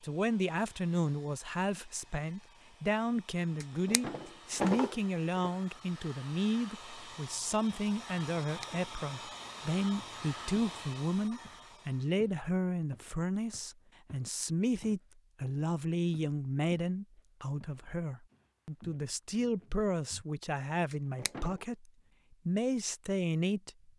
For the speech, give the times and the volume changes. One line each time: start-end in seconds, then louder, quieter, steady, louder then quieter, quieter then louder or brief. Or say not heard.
0.0-23.9 steady.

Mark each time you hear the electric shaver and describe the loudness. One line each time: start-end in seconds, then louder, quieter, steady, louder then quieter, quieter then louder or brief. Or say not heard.
not heard.